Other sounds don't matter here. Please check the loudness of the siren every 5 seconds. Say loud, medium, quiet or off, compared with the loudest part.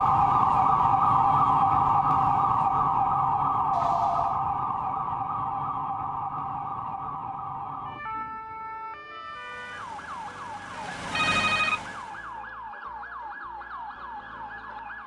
loud, medium, quiet.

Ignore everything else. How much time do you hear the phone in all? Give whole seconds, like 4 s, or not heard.
2 s.